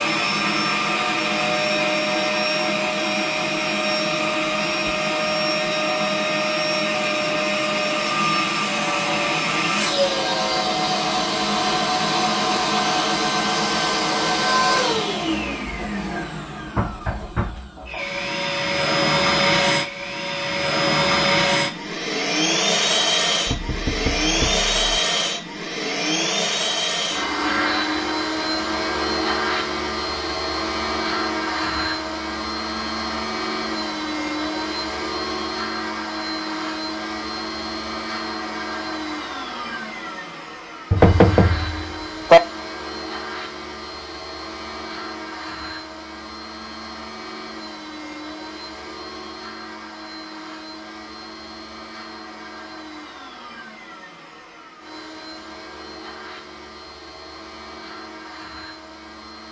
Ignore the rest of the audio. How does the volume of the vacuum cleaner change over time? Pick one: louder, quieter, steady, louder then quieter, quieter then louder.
quieter.